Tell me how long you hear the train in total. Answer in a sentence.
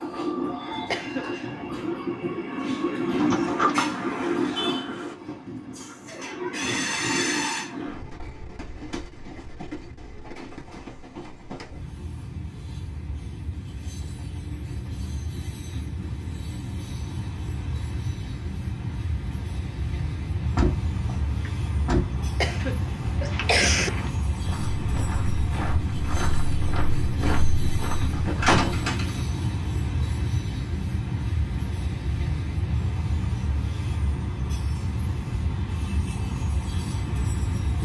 The train can be heard for 38 seconds in total.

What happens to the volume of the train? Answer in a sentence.
The loudness of the train goes down, then up.